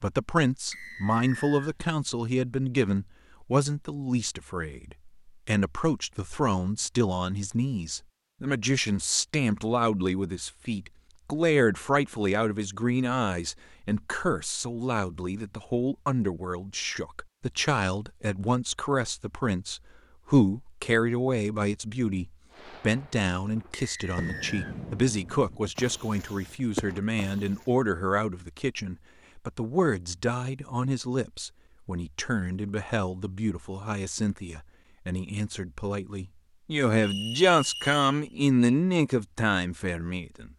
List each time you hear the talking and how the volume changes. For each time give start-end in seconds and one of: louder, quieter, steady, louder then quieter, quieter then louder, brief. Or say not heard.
0.0-40.5 steady.